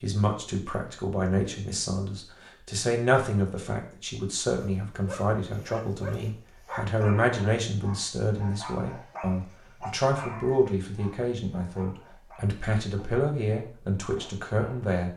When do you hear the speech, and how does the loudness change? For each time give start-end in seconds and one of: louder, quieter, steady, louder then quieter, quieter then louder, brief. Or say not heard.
0.0-15.1 steady.